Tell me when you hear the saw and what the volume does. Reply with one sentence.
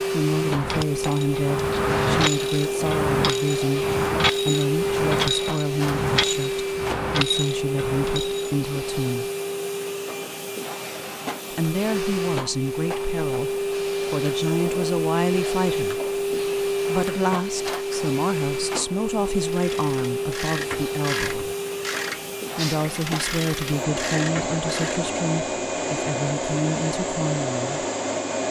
You can't hear the saw here.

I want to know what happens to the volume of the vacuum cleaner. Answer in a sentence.
The loudness of the vacuum cleaner stays about the same.